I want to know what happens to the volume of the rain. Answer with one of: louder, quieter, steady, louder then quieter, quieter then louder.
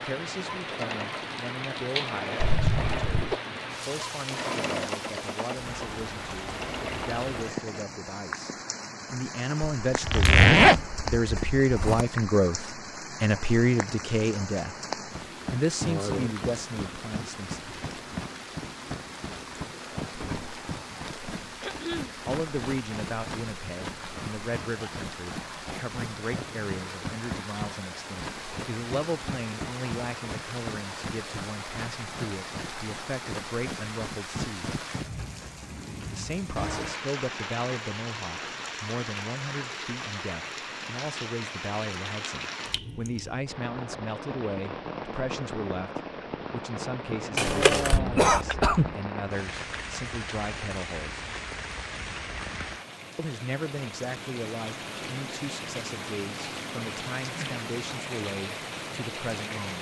steady.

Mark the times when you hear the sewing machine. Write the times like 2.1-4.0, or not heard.
0.0-7.8.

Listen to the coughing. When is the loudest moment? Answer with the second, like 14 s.
48 s.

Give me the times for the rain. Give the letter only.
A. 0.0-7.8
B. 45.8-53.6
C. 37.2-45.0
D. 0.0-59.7
D.